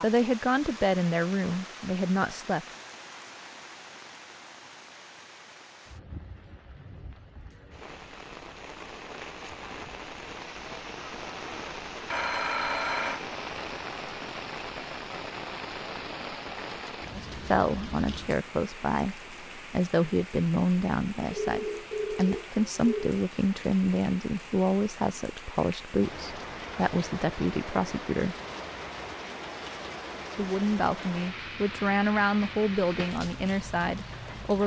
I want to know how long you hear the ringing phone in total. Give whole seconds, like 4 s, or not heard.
4 s.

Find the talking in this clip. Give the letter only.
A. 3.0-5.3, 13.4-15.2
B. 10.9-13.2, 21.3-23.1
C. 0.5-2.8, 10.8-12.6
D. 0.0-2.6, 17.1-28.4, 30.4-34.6
D.